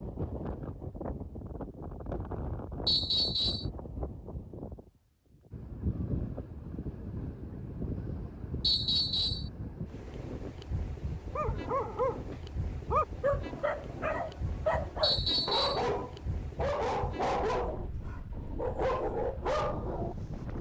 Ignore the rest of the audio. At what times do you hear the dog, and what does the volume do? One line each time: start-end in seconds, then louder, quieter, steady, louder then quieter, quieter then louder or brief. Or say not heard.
11.1-20.1 steady.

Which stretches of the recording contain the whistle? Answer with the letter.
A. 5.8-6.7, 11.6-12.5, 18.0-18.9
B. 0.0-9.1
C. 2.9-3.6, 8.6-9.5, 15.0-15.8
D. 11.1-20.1
C.